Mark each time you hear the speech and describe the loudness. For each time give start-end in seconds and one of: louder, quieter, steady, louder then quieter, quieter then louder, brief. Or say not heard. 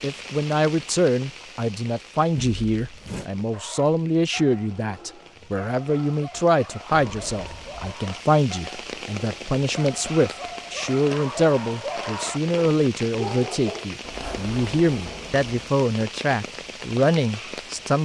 0.0-18.0 steady.